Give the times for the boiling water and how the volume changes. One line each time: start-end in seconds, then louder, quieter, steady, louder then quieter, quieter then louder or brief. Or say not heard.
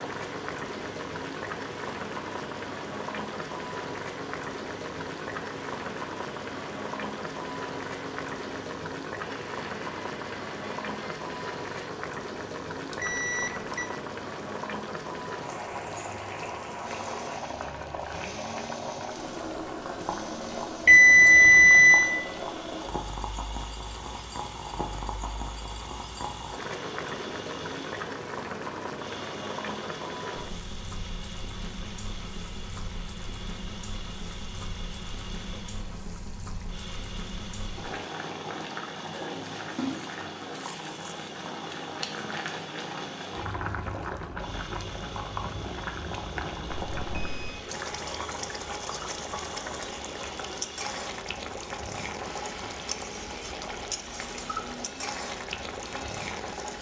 0.0-56.7 steady.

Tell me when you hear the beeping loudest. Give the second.
21 s.